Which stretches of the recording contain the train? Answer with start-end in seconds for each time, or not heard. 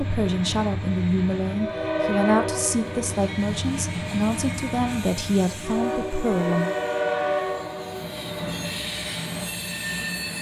0.0-10.3.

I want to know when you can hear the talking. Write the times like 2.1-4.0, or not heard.
0.0-6.7.